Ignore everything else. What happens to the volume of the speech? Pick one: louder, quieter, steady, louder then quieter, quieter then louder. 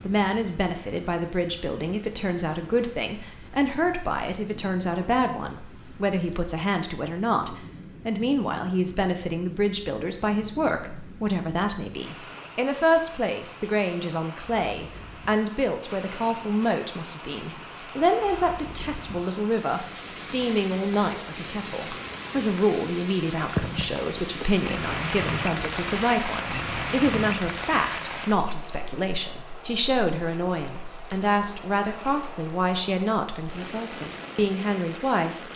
steady.